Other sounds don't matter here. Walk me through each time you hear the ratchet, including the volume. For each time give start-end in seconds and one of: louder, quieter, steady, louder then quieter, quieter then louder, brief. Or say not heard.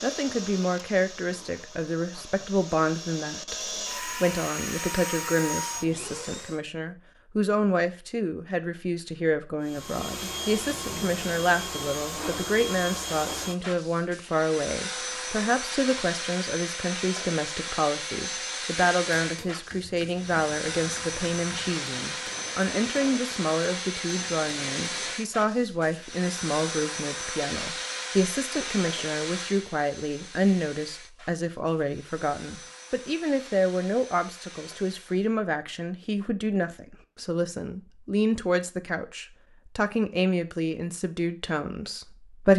not heard.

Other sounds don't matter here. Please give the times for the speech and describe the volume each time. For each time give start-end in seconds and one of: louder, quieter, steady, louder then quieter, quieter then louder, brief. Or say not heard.
0.0-42.5 steady.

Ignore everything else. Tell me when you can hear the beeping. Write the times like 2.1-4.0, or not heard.
not heard.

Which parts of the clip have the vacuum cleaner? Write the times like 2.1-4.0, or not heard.
0.0-6.6, 9.6-35.4.